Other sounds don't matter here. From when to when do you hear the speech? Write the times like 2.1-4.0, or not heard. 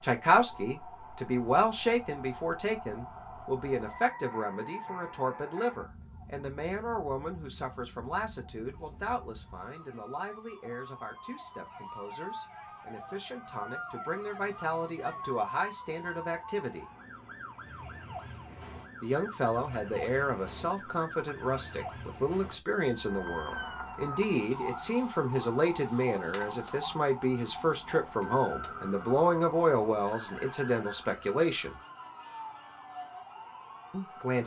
0.0-16.9, 19.0-31.8, 33.9-34.4.